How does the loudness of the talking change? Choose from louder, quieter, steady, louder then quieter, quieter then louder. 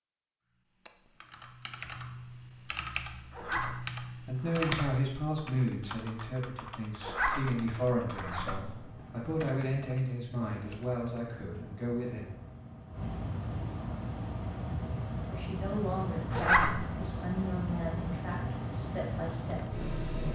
quieter.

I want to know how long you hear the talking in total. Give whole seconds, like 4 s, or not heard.
13 s.